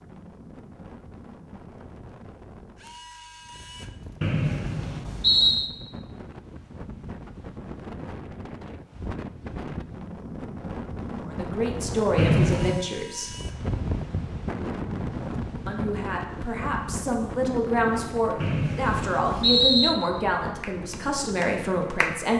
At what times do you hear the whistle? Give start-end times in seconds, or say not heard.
4.2-5.7, 12.2-12.8, 18.4-19.9.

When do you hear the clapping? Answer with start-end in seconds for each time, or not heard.
20.6-22.2.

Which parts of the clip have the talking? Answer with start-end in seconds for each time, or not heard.
11.2-13.3, 15.7-22.3.